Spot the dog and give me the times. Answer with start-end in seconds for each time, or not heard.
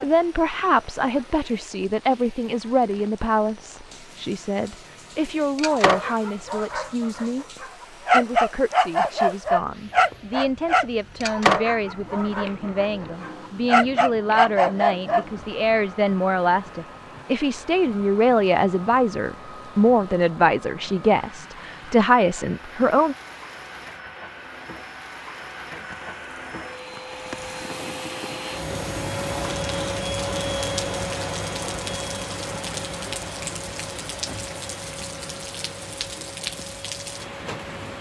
5.5-15.2.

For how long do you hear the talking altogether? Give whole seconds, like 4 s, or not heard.
23 s.